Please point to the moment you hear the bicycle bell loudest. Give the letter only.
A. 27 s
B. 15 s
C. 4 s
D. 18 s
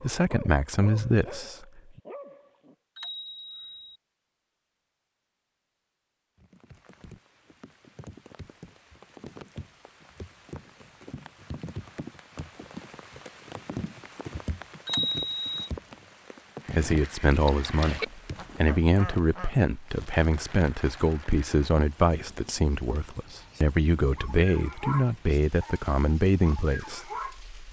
B.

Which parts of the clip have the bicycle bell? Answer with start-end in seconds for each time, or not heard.
3.0-4.0, 14.8-15.4.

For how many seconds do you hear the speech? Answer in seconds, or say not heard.
13 s.